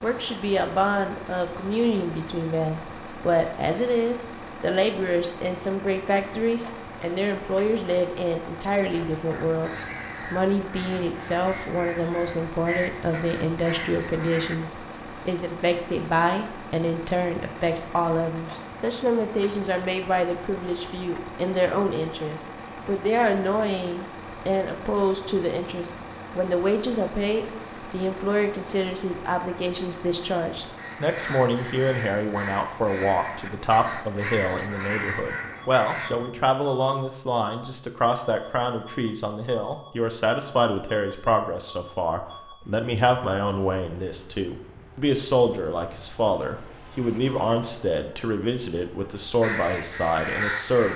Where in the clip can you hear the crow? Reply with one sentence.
You can hear the crow from 8.9 to 14.6 s, from 30.8 to 36.5 s and from 49.4 to 50.9 s.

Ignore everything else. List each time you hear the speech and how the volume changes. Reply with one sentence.
You can hear the speech from 0.0 to 50.9 s, at a steady volume.